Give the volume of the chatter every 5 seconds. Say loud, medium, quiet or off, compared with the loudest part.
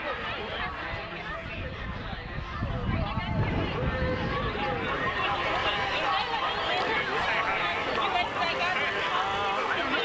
medium, loud.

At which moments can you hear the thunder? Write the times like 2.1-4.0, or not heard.
3.2-5.3.